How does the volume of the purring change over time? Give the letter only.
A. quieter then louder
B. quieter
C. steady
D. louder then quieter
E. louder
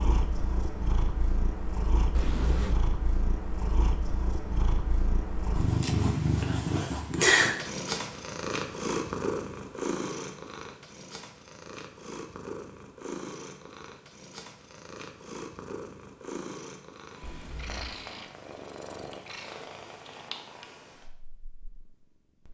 D.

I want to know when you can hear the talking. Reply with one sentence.
The talking can't be heard in this clip.